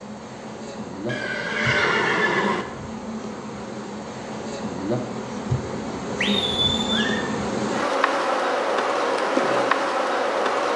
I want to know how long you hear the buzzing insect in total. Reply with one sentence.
The buzzing insect can be heard for 11 seconds in total.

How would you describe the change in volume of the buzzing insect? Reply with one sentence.
The loudness of the buzzing insect goes up.